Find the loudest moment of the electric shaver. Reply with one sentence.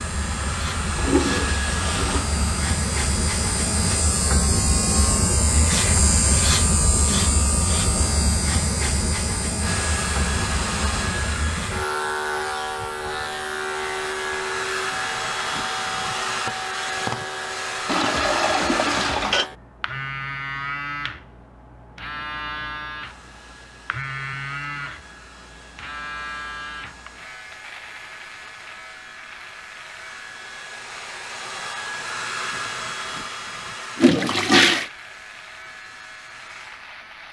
The volume of the electric shaver peaks at 6 seconds.